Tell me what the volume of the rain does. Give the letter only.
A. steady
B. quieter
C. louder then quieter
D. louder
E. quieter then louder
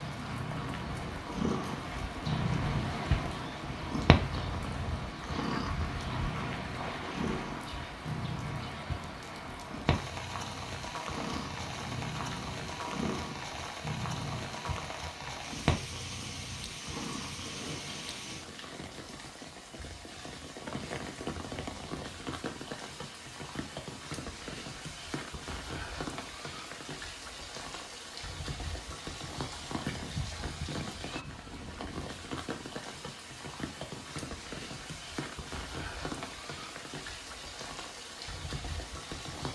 A.